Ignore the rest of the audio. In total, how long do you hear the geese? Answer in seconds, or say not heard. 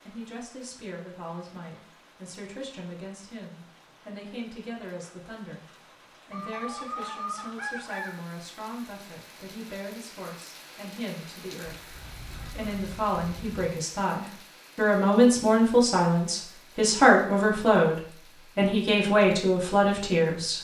4 s.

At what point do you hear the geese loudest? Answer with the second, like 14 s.
7 s.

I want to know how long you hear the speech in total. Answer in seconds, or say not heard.
20 s.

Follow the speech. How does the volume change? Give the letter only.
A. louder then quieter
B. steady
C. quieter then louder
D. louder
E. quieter
D.